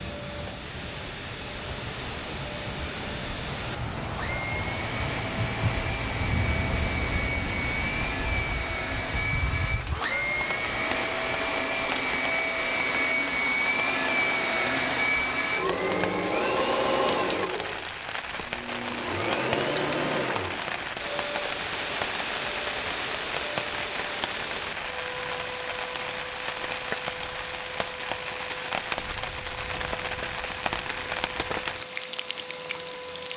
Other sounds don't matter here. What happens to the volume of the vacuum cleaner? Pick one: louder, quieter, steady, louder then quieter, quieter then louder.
louder then quieter.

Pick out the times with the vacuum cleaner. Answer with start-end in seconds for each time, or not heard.
0.0-33.3.